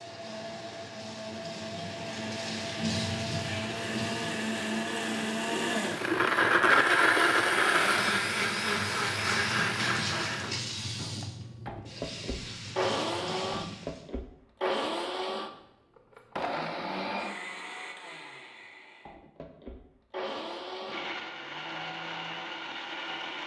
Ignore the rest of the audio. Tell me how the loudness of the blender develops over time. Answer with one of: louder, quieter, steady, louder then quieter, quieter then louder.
louder then quieter.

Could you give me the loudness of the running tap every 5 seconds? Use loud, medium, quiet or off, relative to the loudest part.
loud, loud, loud, off, off.